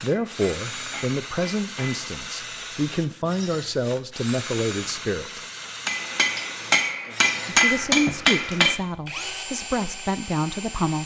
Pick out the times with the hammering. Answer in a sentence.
You can hear the hammering from 0.1 to 2.0 s and from 5.8 to 8.8 s.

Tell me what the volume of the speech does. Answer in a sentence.
The loudness of the speech stays about the same.